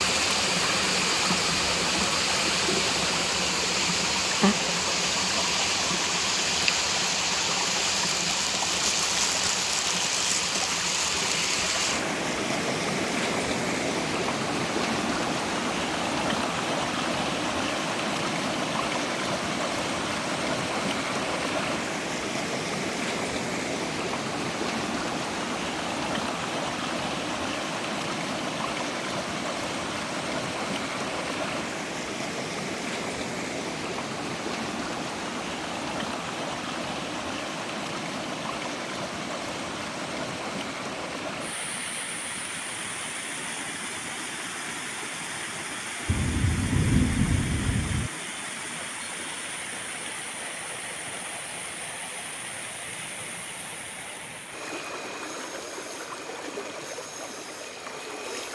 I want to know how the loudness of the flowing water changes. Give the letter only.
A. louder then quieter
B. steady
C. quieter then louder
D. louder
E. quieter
E.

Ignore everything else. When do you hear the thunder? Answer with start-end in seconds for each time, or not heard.
46.0-48.1.